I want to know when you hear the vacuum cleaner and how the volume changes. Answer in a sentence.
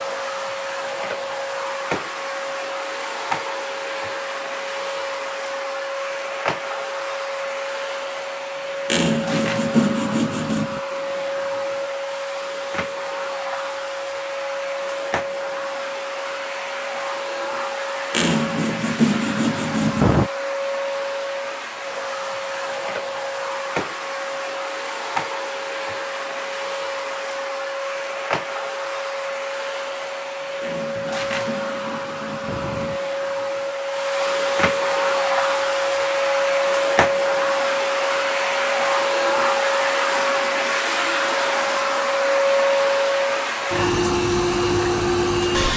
The vacuum cleaner can be heard from 0.0 to 45.7 s, getting louder.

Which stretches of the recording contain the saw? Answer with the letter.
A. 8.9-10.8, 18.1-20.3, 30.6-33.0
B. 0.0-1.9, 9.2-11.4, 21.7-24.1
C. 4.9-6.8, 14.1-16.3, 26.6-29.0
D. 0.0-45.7
A.